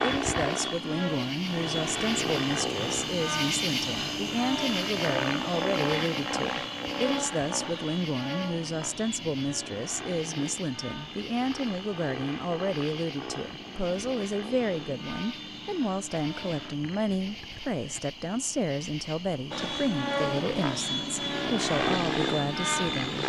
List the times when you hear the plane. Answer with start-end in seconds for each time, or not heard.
0.0-16.8, 19.5-23.2.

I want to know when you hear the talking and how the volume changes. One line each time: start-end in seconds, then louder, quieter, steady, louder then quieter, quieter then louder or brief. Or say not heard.
0.0-23.2 steady.